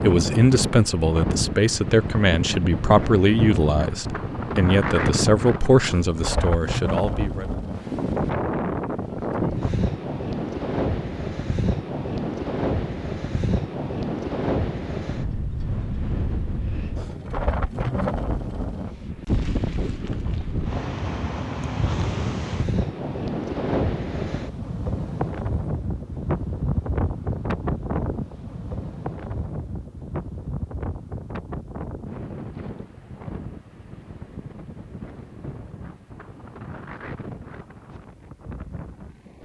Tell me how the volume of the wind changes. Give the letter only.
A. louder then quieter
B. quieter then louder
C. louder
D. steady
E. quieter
E.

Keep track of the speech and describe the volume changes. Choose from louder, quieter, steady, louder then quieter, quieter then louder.
steady.